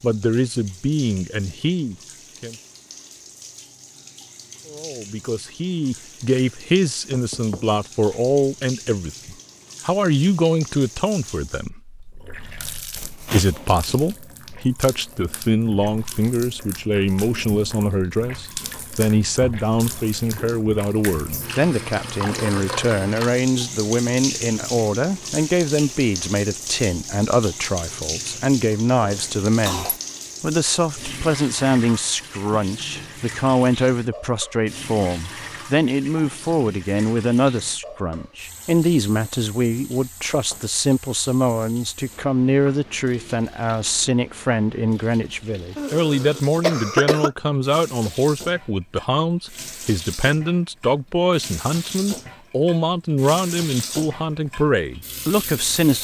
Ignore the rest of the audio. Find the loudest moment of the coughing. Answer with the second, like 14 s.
47 s.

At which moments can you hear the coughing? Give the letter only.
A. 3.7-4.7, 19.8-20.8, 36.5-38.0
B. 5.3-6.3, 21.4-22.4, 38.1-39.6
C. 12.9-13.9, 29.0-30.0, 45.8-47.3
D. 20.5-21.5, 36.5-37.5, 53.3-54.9
C.